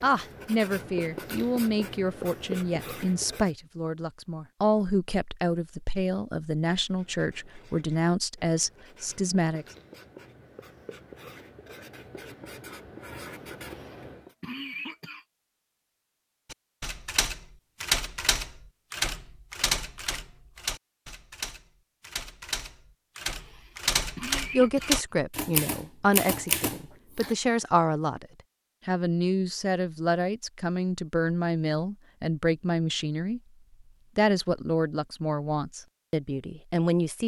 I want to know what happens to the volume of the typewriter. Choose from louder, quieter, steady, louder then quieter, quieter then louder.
quieter then louder.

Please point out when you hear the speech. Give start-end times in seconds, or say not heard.
0.0-9.7, 24.5-28.2, 28.9-33.4, 34.1-37.2.